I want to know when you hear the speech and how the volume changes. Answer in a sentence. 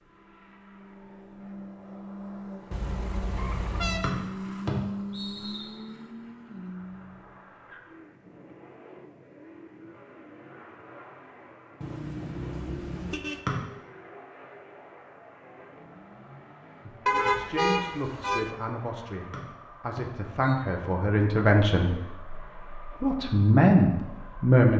The speech can be heard from 16.9 to 24.7 s, getting louder.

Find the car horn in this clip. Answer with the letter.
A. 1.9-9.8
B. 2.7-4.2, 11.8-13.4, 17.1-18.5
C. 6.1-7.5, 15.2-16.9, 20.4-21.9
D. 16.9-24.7
B.